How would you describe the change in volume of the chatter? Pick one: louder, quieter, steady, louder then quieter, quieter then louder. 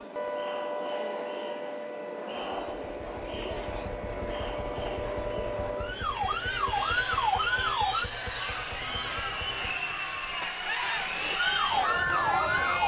louder.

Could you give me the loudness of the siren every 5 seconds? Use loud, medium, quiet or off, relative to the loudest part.
medium, loud, loud.